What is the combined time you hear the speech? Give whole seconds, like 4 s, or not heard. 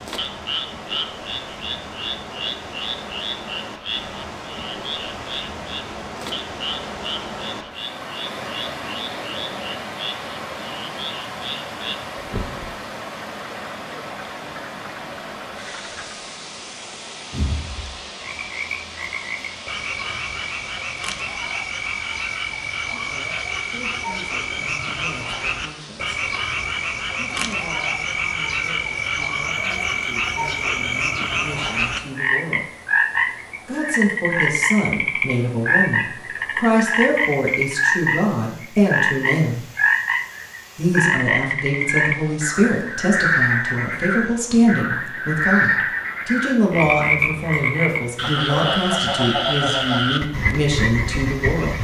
26 s.